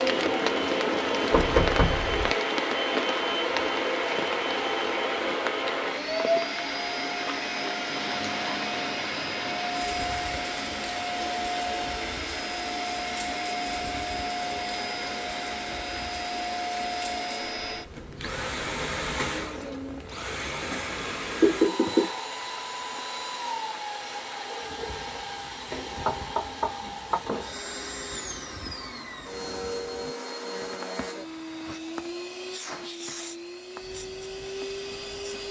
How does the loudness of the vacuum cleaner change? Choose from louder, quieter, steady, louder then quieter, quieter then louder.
quieter.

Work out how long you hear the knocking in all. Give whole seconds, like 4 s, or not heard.
3 s.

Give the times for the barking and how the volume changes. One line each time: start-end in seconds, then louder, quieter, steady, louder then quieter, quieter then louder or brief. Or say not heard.
not heard.